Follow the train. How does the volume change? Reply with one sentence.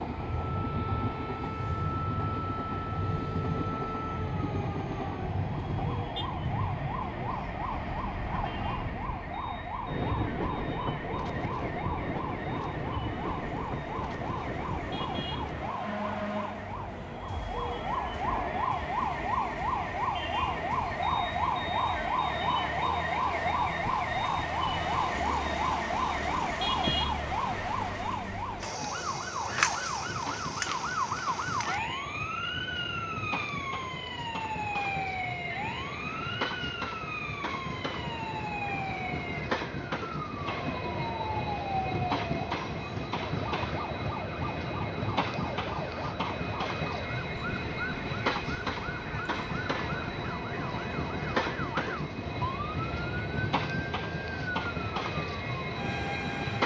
The volume of the train goes down, then up.